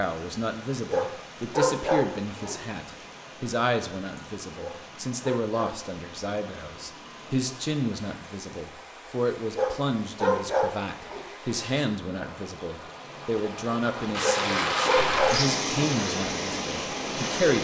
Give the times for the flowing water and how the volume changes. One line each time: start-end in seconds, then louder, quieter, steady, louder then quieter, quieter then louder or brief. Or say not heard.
0.0-17.5 louder.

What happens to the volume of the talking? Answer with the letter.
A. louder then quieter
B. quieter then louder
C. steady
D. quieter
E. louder
C.